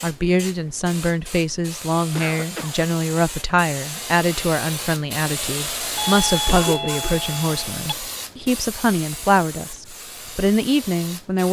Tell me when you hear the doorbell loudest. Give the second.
6 s.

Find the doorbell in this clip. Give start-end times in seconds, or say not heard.
6.0-8.0.